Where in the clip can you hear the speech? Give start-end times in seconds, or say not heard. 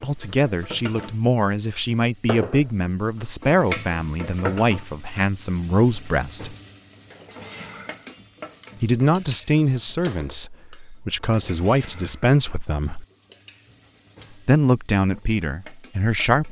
0.0-6.5, 8.8-13.1, 14.4-16.4.